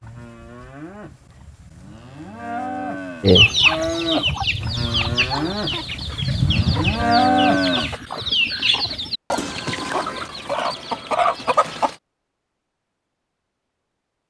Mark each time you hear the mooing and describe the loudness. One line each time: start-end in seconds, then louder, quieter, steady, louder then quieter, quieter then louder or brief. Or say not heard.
0.0-8.0 louder.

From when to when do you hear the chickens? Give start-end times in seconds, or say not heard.
3.2-11.9.